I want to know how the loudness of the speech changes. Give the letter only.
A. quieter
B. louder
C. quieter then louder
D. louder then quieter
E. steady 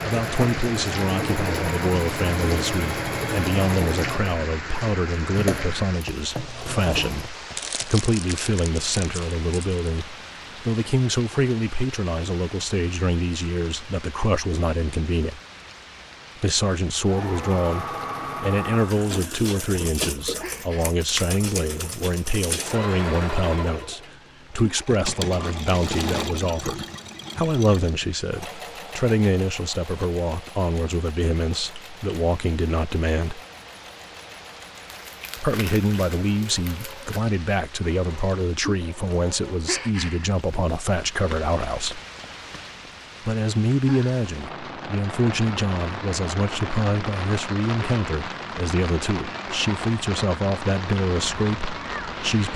E.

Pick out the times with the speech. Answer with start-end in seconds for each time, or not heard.
0.0-15.4, 16.4-33.4, 35.4-42.0, 43.2-52.5.